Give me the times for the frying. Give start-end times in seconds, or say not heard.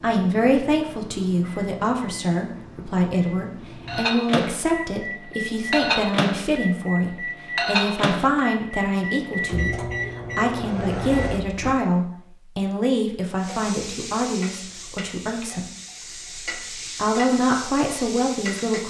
13.3-18.8.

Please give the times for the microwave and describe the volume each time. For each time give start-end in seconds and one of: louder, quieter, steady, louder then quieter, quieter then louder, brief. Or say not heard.
0.0-11.8 louder.